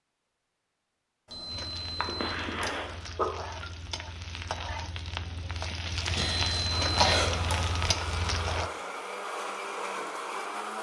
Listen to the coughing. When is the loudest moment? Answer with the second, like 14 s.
7 s.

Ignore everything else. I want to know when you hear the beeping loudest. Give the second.
7 s.